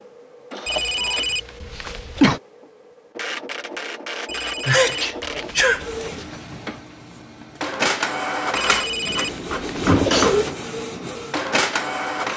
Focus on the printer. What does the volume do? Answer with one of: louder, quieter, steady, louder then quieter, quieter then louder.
louder.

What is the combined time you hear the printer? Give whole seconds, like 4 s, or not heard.
12 s.